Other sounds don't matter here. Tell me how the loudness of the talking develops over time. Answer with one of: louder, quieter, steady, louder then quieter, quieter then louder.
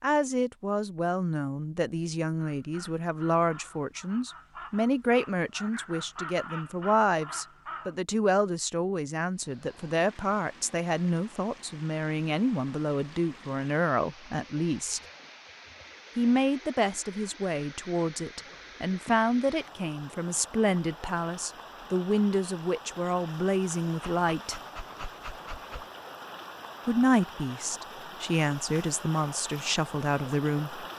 steady.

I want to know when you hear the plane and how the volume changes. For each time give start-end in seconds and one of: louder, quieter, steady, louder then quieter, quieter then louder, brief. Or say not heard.
not heard.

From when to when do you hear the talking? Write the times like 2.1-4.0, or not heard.
0.0-15.0, 16.1-24.6, 26.9-30.9.